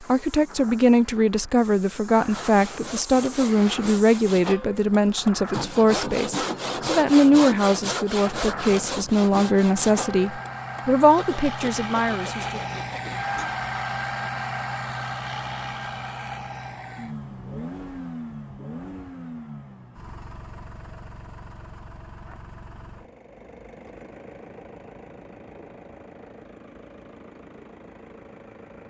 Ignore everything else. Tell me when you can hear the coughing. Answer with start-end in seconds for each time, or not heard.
not heard.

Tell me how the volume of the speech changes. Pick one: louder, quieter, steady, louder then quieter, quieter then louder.
steady.